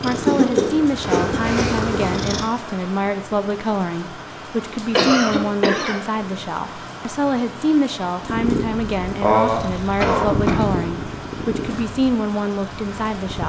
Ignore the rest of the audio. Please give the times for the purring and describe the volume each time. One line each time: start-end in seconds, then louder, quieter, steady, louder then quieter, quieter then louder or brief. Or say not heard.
0.0-2.5 brief
8.2-13.4 louder then quieter.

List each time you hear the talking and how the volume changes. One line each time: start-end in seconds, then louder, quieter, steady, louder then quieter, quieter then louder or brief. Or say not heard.
0.0-13.4 steady.